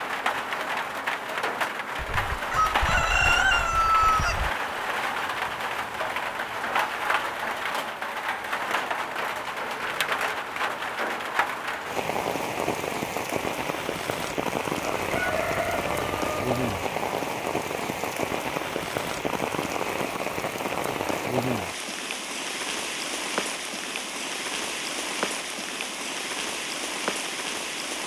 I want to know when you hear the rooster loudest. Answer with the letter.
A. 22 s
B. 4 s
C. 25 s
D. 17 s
B.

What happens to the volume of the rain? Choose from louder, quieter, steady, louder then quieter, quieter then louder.
steady.